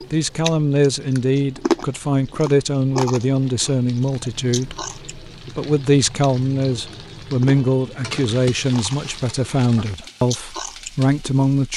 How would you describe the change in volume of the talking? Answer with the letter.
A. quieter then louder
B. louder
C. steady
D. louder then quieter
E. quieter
C.